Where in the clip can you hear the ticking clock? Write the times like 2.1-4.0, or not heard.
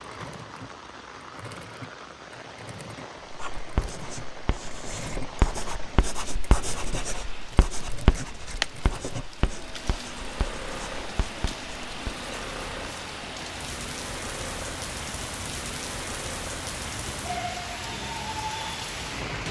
not heard.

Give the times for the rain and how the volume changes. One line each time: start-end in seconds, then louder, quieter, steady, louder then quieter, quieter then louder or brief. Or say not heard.
0.0-19.4 louder.